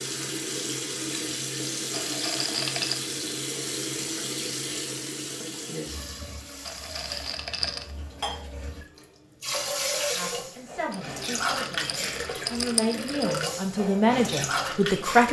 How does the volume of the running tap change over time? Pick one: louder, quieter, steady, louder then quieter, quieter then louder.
quieter then louder.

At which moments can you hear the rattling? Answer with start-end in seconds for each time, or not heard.
1.9-3.0, 6.7-7.9, 10.9-13.5.